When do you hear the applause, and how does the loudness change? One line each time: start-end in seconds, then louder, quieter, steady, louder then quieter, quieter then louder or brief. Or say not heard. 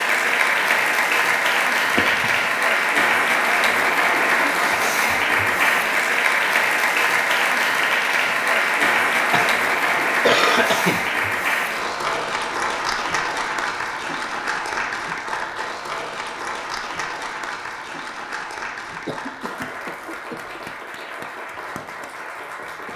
0.0-22.9 quieter.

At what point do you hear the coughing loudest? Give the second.
10 s.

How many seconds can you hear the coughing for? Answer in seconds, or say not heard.
4 s.